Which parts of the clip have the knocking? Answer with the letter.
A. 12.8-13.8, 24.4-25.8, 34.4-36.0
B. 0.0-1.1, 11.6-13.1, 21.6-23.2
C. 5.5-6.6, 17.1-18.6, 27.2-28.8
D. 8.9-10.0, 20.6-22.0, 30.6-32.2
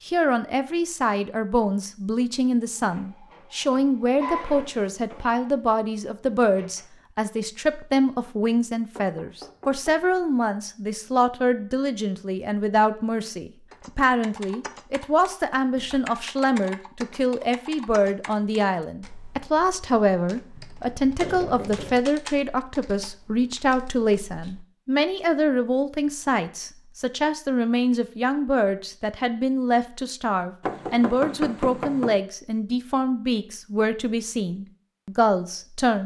D.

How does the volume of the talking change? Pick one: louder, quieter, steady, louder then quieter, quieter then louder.
steady.